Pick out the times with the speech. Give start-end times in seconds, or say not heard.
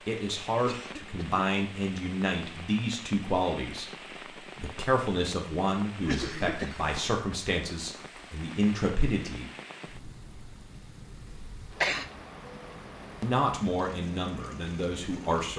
0.1-3.9, 4.5-9.4, 13.2-15.5.